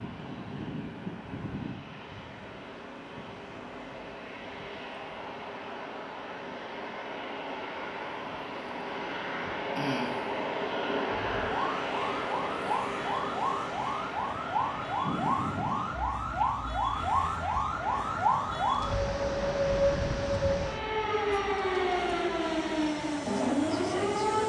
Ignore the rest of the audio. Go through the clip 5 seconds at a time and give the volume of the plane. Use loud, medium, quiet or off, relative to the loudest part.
medium, loud, loud, medium, medium.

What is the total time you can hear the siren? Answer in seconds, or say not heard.
13 s.